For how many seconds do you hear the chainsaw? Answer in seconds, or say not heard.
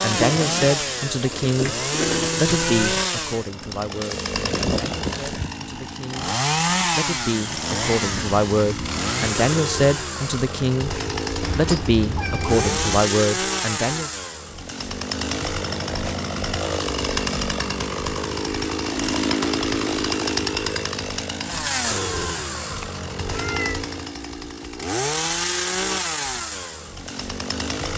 28 s.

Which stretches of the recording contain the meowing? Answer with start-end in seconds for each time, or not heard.
2.5-3.0, 11.4-13.1, 22.6-23.8.